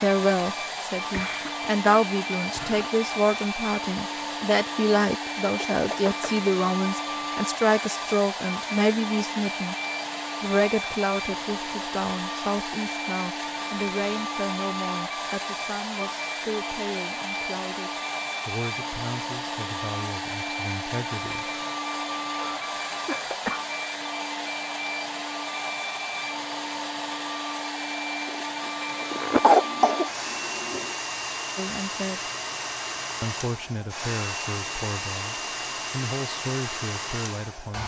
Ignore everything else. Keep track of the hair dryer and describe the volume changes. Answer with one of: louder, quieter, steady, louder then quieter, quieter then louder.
steady.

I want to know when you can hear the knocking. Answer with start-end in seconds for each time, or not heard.
5.5-6.3.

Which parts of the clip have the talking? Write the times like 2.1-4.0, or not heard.
0.0-9.8, 10.4-21.5, 31.6-32.2, 33.2-37.8.